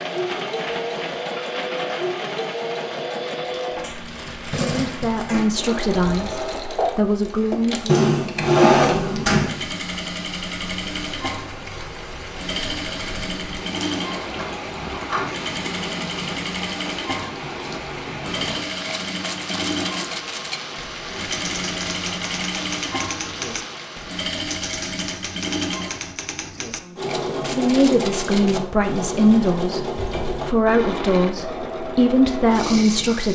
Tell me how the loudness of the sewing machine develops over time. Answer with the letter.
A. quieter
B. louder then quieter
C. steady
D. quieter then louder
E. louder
C.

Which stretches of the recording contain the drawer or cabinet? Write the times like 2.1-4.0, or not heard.
7.8-9.6, 13.8-15.3, 29.9-30.4.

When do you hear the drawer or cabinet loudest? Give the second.
9 s.